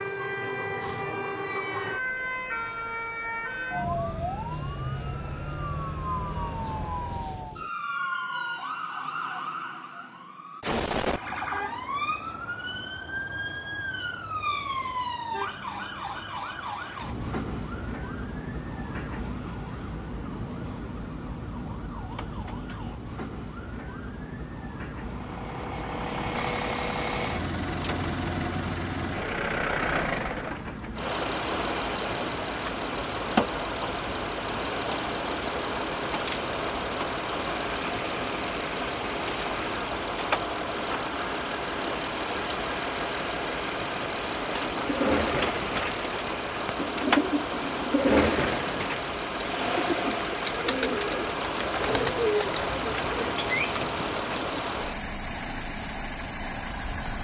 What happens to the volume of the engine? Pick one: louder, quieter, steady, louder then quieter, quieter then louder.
steady.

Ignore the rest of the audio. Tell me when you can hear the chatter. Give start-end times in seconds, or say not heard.
not heard.